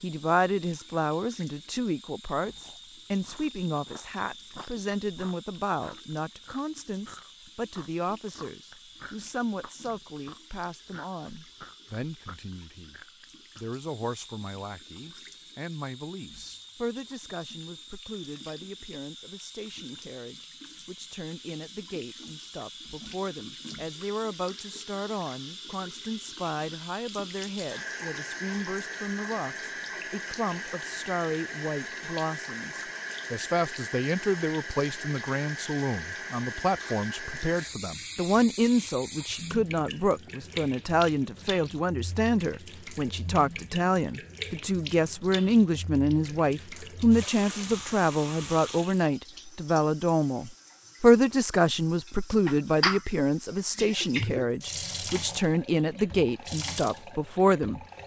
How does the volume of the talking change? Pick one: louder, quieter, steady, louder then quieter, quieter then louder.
quieter then louder.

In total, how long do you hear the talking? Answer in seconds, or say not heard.
58 s.